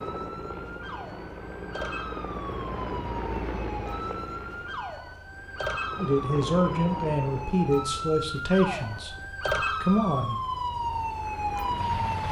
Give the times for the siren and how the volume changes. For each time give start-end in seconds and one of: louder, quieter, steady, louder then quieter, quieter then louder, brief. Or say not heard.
0.0-12.2 louder.